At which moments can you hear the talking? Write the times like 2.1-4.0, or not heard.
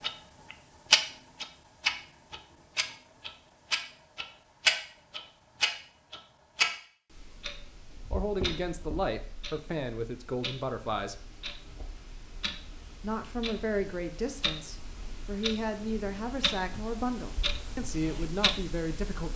8.1-11.2, 13.0-19.3.